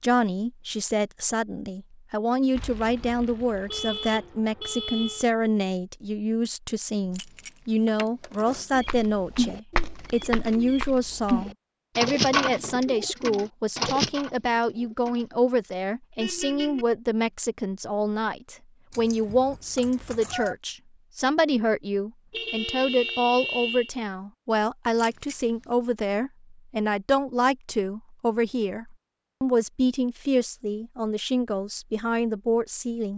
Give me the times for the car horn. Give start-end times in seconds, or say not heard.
2.5-5.2, 16.2-16.9, 22.3-23.9.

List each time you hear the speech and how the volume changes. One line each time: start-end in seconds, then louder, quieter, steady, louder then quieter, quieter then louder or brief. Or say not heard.
0.0-33.1 steady.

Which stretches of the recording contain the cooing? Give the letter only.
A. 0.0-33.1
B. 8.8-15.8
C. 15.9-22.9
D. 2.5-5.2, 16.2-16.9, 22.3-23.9
B.